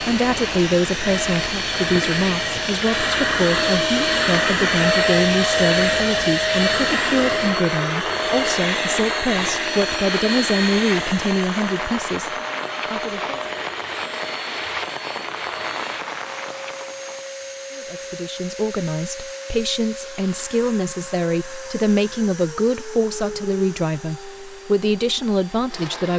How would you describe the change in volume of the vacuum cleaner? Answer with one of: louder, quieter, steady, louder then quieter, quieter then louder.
quieter.